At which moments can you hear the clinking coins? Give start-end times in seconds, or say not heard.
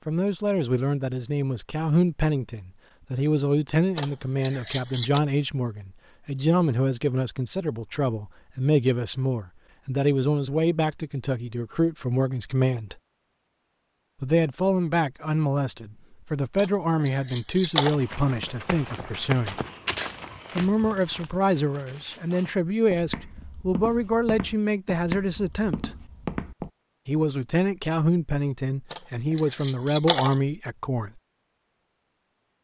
4.0-5.2, 16.6-18.0, 28.9-30.4.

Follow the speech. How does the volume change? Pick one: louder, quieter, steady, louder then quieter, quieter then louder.
steady.